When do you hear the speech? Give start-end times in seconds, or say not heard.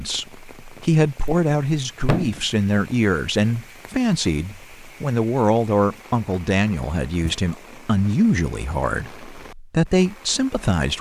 0.0-10.9.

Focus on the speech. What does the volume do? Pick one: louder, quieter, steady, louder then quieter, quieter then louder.
steady.